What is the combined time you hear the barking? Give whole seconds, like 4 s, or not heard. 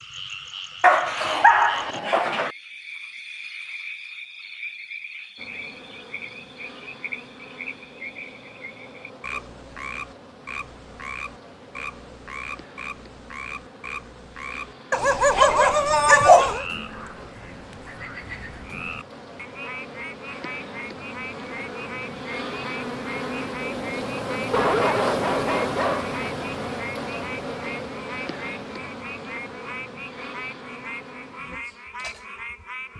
5 s.